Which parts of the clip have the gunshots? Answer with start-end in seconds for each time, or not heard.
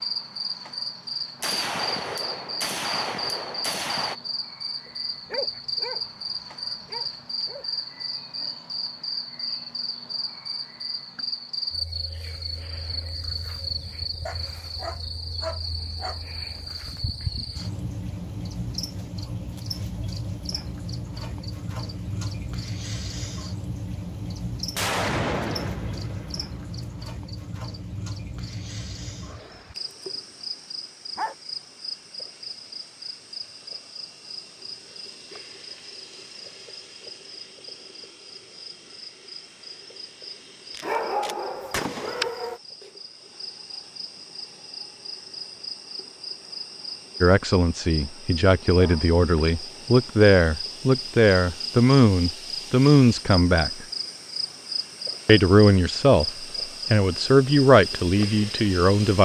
1.4-4.2, 24.8-27.1, 40.7-42.3.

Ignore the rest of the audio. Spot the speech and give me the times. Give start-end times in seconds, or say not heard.
47.2-53.9, 55.2-59.2.